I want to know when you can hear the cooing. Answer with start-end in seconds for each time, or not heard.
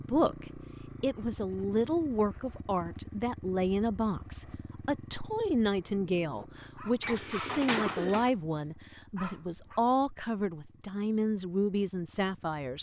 7.0-8.3.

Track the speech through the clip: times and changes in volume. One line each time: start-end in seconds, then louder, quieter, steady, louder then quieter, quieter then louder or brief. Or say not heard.
0.0-12.7 steady.